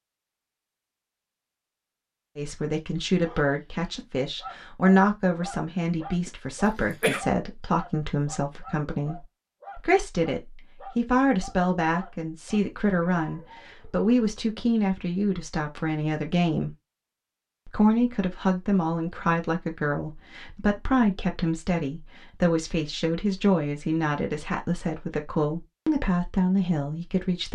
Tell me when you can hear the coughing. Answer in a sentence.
You can hear the coughing from 6.2 to 7.2 s.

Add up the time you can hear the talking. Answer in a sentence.
You can hear the talking for 24 seconds altogether.